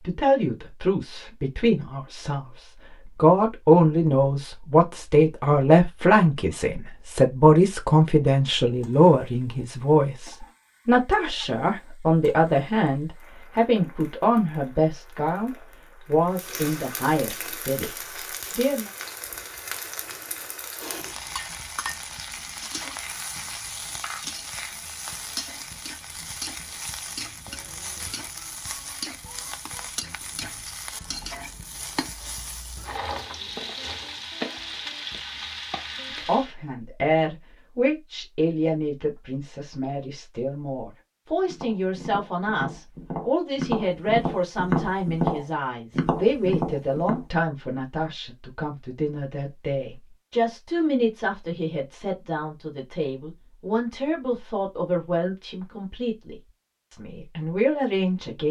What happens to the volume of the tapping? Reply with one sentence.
The volume of the tapping goes up.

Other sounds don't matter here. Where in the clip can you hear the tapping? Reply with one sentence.
You can hear the tapping from 41.5 to 47.2 s.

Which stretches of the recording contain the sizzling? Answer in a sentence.
You can hear the sizzling from 8.7 to 36.5 s.